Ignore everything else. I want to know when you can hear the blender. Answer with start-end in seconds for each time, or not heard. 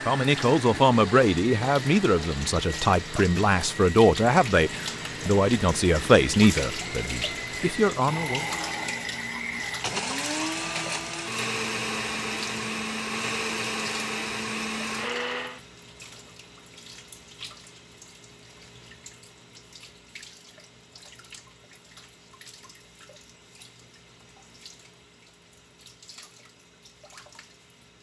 0.0-15.6.